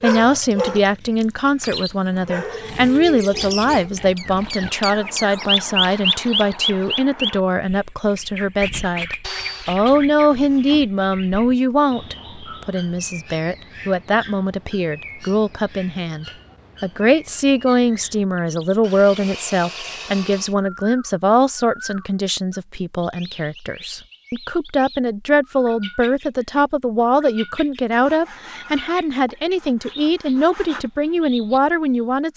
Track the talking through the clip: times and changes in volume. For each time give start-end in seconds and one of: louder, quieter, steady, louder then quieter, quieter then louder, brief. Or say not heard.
0.0-32.3 steady.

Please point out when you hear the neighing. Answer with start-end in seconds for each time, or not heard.
not heard.